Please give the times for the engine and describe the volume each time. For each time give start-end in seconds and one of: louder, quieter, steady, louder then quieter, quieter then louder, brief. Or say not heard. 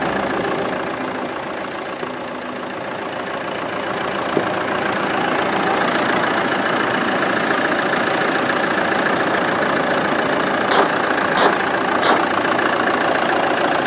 0.0-13.8 louder.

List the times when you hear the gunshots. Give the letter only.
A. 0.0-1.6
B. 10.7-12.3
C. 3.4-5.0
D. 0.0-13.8
B.